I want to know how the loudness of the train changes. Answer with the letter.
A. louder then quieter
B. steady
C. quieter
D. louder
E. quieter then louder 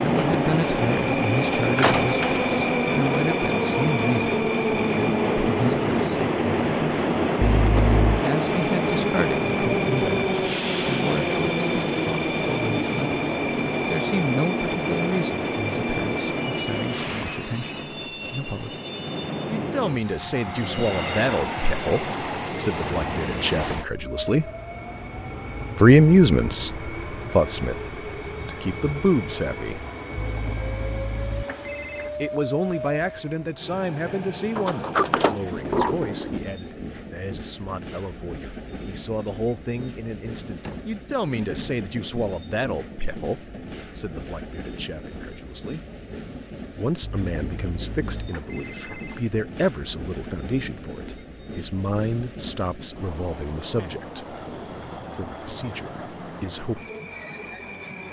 C.